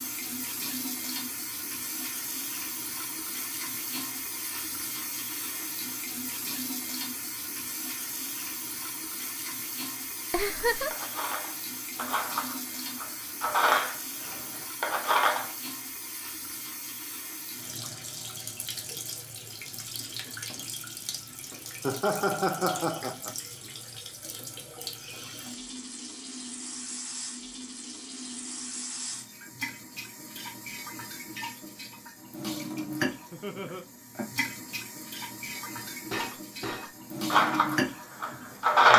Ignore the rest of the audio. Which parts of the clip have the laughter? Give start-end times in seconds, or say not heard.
10.3-10.9, 21.9-23.3, 33.3-33.9.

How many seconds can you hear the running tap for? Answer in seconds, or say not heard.
39 s.